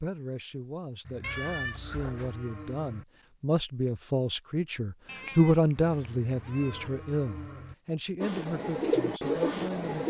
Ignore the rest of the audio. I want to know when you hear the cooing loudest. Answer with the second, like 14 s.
9 s.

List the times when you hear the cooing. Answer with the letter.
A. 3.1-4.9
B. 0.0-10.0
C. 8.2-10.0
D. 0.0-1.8
C.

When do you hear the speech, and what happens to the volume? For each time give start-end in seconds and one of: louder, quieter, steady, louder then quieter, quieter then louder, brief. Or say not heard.
0.0-10.0 louder then quieter.